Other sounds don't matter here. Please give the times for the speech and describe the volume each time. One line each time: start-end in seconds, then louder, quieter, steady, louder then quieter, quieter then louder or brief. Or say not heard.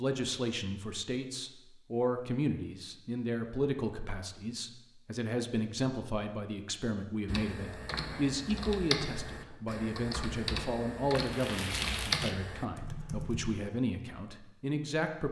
0.0-15.2 steady.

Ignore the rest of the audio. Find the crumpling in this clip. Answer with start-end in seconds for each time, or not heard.
11.1-12.3.